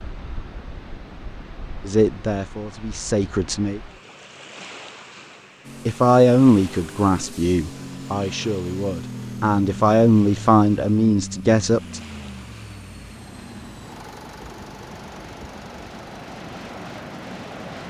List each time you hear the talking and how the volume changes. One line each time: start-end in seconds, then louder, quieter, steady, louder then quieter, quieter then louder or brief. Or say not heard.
1.8-3.8 brief
5.8-12.0 quieter then louder.